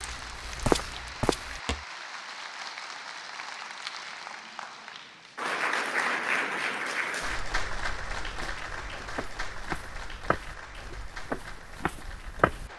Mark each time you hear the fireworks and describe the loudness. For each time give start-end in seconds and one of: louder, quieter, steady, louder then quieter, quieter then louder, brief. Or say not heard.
not heard.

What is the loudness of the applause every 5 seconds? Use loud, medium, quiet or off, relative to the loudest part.
medium, loud, quiet.